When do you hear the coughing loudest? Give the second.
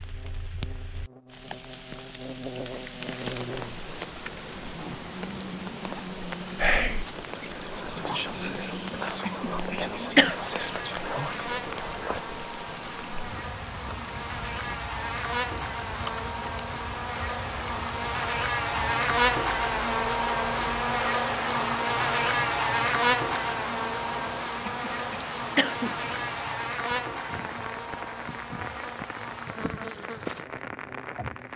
10 s.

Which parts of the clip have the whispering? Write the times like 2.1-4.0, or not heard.
6.5-12.2.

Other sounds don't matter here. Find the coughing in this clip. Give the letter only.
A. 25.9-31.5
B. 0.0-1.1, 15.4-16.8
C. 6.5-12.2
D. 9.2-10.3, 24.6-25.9
D.